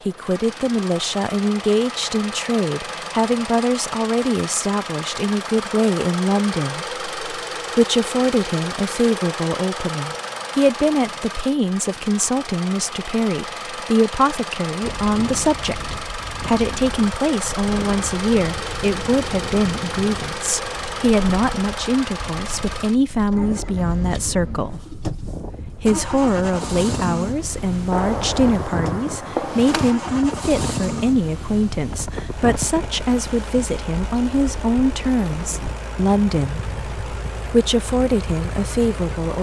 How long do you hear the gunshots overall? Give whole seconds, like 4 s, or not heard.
2 s.